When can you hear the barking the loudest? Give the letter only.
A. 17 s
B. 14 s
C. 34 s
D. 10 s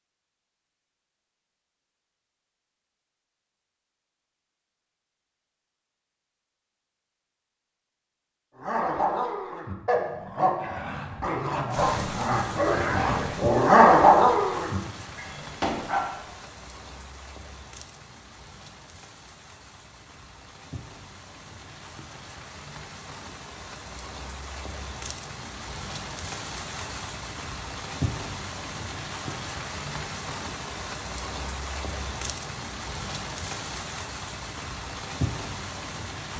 B.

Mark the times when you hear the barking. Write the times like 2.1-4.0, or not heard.
8.6-16.2.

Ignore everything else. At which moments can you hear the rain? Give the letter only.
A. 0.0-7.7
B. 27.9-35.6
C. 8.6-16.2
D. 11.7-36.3
D.